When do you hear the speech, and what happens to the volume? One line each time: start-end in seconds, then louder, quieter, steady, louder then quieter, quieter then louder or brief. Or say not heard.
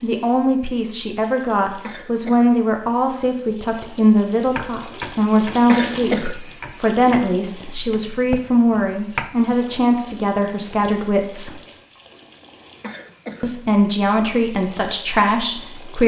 0.0-11.6 steady
13.4-16.0 brief.